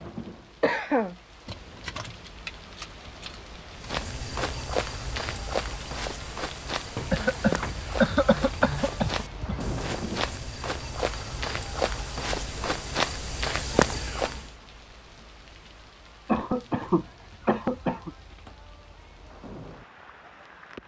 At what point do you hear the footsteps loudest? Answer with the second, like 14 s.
14 s.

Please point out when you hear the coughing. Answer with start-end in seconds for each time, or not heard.
0.1-1.1, 7.1-9.8, 16.2-18.1.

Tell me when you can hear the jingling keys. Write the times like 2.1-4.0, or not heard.
1.4-3.9.